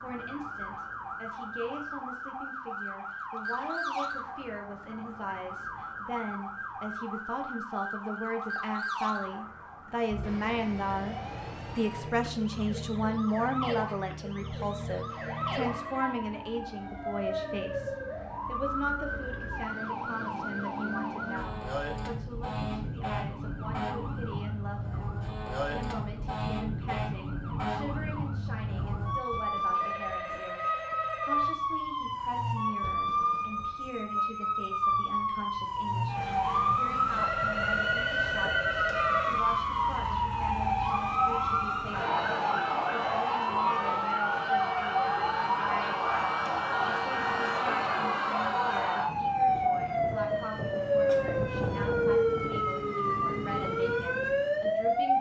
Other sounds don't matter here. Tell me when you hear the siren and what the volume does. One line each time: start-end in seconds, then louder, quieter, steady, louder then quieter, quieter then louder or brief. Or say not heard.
0.0-55.1 louder.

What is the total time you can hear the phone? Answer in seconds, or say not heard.
5 s.